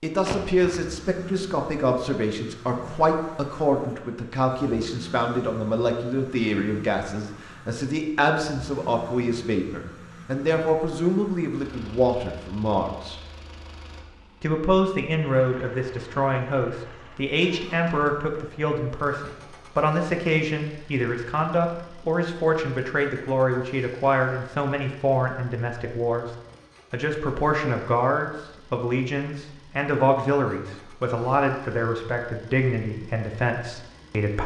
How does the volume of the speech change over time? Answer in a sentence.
The volume of the speech stays about the same.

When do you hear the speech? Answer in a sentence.
You can hear the speech from 0.0 to 13.2 s, from 14.4 to 26.2 s and from 26.9 to 34.4 s.